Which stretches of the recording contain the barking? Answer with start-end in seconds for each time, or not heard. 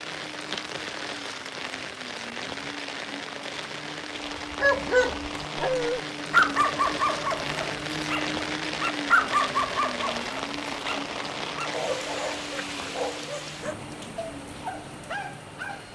4.5-15.8.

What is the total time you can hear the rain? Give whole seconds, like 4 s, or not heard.
16 s.